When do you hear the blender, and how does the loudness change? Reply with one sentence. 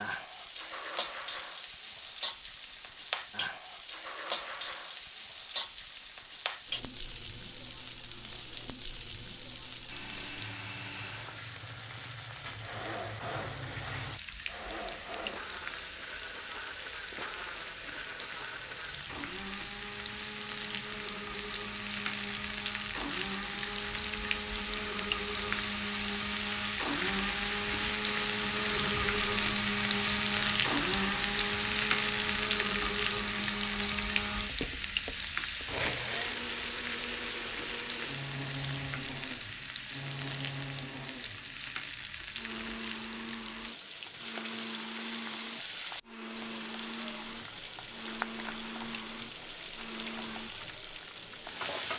The blender can be heard from 9.8 to 50.5 s, getting louder then quieter.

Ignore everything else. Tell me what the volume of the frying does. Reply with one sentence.
The loudness of the frying goes up, then down.